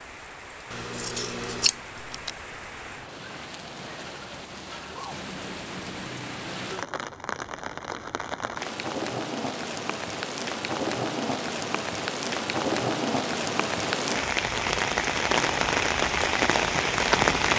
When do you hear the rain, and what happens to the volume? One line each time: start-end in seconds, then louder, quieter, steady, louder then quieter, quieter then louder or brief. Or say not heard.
0.0-17.5 louder.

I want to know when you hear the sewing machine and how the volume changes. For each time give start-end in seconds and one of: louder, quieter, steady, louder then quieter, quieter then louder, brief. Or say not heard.
not heard.